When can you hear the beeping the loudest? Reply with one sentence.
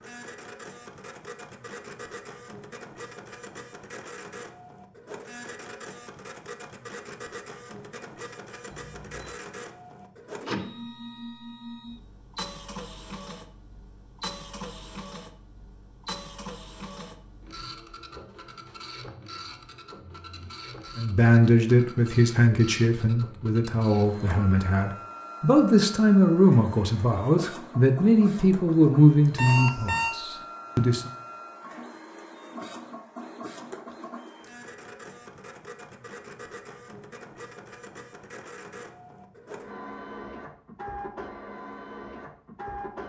The loudest moment of the beeping is at 30 seconds.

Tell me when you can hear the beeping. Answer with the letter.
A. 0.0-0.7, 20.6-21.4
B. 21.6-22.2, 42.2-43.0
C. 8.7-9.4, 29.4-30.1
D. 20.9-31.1
C.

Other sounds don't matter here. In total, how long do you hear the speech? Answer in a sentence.
You can hear the speech for 10 seconds altogether.